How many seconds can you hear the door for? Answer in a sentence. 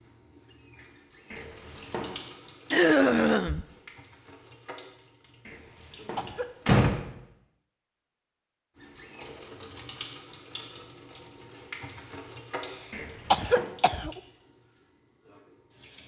You can hear the door for 3 seconds altogether.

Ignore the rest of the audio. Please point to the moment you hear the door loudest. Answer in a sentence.
The volume of the door peaks at 7 seconds.